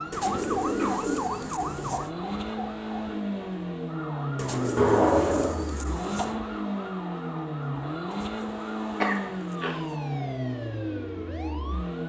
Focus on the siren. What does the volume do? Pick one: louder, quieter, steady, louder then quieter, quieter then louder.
quieter.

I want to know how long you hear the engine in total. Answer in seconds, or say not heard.
12 s.